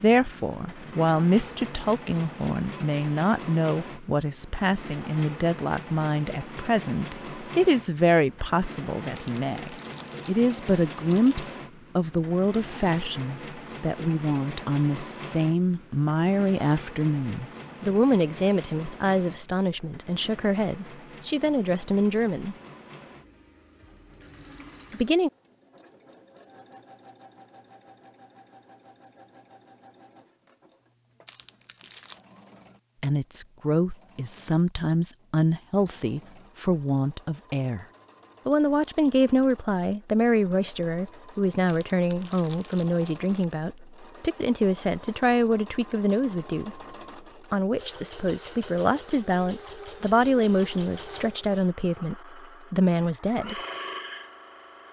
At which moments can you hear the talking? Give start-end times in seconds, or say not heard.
0.0-22.6, 24.9-25.3, 33.0-37.9, 38.5-46.8, 47.5-53.6.